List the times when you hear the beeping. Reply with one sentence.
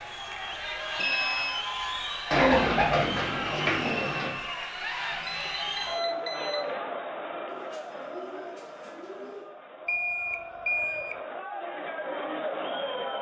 You can hear the beeping from 0.9 to 1.6 s, from 5.2 to 6.7 s and from 9.8 to 11.2 s.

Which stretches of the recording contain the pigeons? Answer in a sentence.
The pigeons can be heard from 2.3 to 4.3 s and from 7.5 to 9.4 s.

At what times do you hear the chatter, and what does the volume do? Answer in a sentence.
You can hear the chatter from 0.0 to 13.1 s, getting quieter then louder.